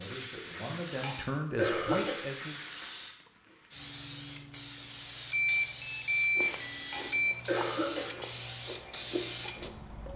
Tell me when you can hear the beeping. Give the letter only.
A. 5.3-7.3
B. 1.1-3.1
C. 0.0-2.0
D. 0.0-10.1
A.